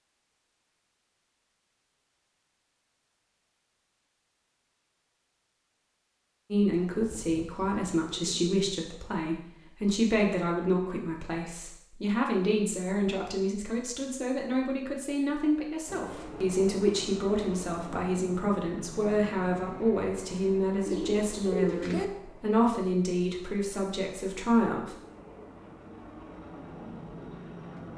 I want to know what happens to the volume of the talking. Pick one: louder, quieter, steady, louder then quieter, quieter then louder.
steady.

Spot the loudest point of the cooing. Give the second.
22 s.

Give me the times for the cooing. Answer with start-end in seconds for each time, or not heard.
6.7-8.6, 20.9-22.1.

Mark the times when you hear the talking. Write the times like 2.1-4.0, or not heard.
6.5-24.9.